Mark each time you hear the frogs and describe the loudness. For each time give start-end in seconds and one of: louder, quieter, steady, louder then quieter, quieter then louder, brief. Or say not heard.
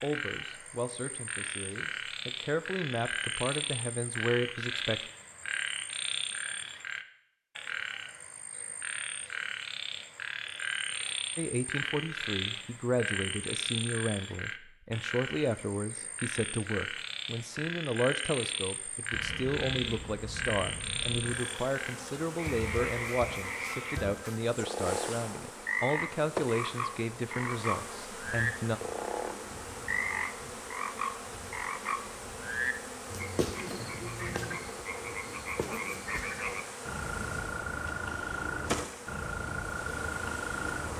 0.0-40.9 steady.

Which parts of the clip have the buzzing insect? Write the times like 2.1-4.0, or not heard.
19.1-40.9.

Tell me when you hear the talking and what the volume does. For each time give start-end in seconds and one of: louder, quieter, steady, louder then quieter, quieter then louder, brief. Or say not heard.
0.0-5.0 quieter then louder
11.3-28.8 steady.